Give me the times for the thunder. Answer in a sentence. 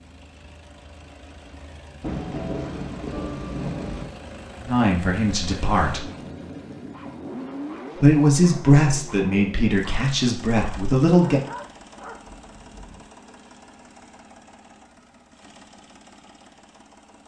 The thunder can be heard from 2.0 to 4.0 s.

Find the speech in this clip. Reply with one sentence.
You can hear the speech from 4.7 to 6.0 s and from 8.0 to 11.4 s.